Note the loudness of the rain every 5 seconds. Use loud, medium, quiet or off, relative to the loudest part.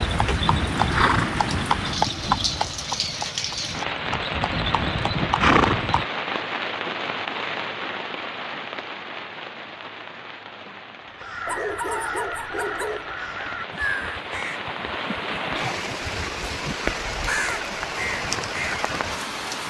loud, loud, medium, loud.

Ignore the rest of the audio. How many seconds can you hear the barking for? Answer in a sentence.
The barking can be heard for 2 seconds in total.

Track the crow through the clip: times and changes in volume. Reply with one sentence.
The crow can be heard from 11.1 to 18.9 s, getting quieter then louder.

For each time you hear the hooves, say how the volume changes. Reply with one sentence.
The hooves can be heard from 0.0 to 6.0 s, getting quieter then louder.